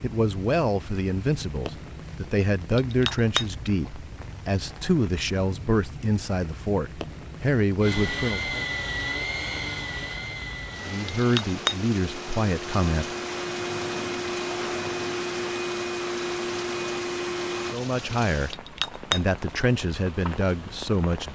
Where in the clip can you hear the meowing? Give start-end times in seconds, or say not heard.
not heard.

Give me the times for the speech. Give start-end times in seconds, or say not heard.
0.0-8.7, 10.8-13.1, 17.7-21.2.